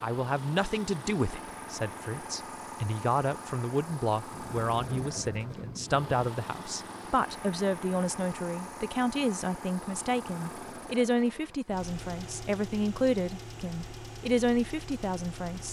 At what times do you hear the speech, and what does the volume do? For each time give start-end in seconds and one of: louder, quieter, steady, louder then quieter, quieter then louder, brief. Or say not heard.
0.0-15.6 steady.